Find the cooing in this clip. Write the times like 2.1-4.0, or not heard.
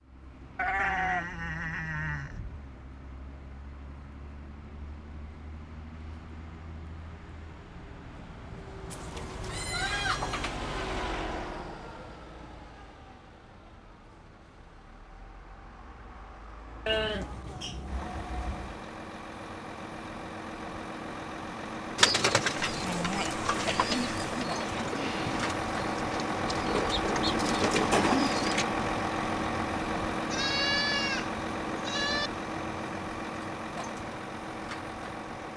21.9-28.6.